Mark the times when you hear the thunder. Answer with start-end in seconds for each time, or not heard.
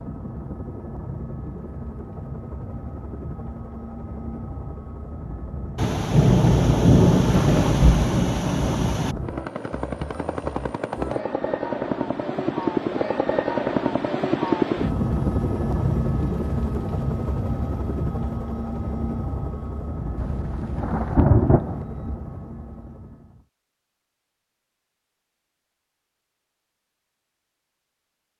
5.8-9.2, 20.1-21.8.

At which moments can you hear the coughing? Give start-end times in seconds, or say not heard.
not heard.